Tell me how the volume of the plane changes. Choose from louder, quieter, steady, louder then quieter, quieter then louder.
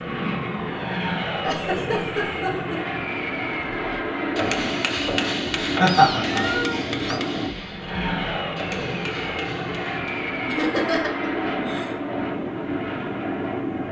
steady.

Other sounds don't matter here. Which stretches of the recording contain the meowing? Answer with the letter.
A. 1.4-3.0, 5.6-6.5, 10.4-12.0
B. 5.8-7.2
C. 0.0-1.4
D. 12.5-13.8
B.